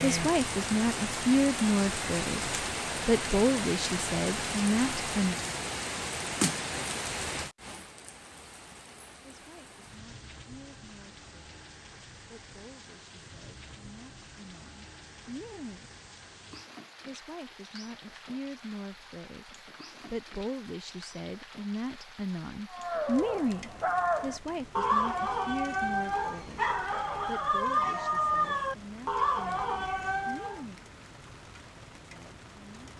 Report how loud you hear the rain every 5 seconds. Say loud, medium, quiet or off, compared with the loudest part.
loud, loud, quiet, quiet, quiet, quiet, quiet.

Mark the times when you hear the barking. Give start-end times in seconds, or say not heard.
22.7-30.6.